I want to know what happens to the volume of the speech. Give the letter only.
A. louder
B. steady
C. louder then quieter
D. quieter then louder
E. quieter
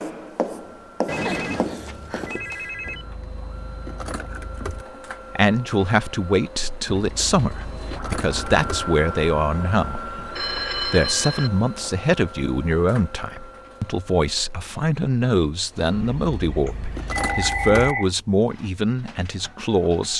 B.